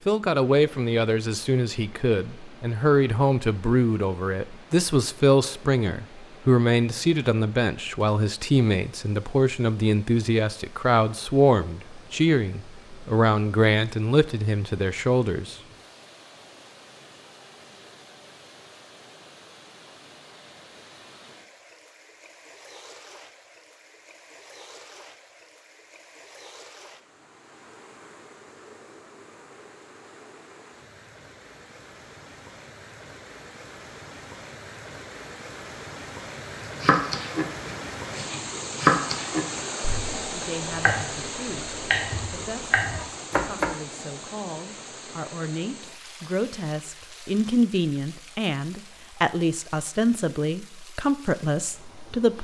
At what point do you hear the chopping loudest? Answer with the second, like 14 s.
39 s.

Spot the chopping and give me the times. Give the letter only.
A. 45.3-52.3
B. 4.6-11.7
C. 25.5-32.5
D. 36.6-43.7
D.